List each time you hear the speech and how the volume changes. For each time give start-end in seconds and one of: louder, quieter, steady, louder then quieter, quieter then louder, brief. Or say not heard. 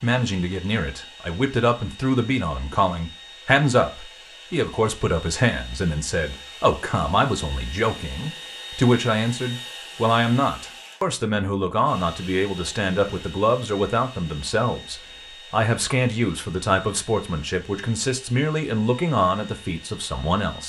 0.0-20.6 steady.